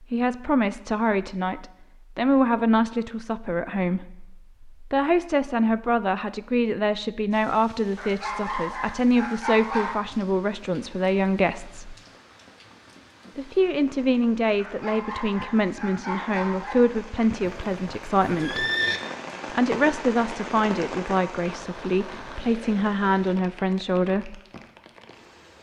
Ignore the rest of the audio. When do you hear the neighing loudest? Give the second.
19 s.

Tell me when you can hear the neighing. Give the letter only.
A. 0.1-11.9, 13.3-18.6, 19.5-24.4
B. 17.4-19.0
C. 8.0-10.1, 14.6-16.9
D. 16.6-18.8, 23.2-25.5
B.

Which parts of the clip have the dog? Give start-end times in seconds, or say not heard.
8.0-10.1, 14.6-16.9.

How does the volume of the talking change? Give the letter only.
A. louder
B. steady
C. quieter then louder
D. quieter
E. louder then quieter
B.